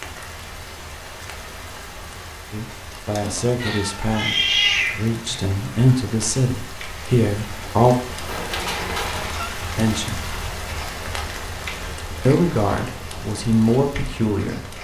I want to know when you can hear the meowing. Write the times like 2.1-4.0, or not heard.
3.6-5.0, 8.2-9.5.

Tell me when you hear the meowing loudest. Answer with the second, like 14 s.
5 s.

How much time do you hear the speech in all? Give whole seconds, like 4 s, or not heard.
8 s.